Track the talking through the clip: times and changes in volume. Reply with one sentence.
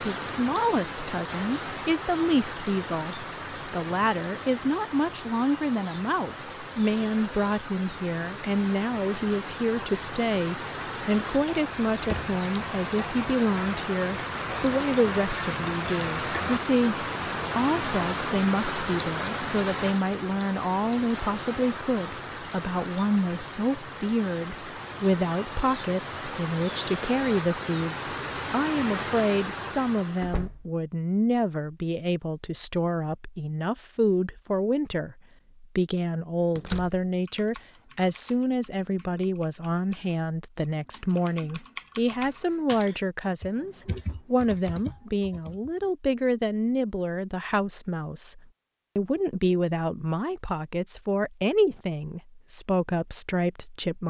You can hear the talking from 0.0 to 54.0 s, at a steady volume.